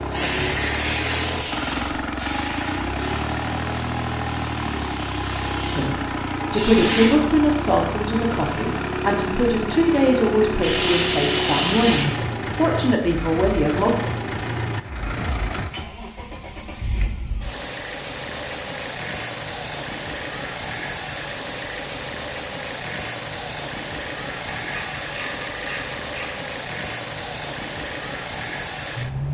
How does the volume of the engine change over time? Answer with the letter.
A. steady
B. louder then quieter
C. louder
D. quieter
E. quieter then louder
A.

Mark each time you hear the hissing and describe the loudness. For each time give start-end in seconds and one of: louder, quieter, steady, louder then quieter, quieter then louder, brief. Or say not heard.
0.0-7.2 quieter then louder.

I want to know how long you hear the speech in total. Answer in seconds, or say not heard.
8 s.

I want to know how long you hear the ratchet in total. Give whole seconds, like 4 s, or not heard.
3 s.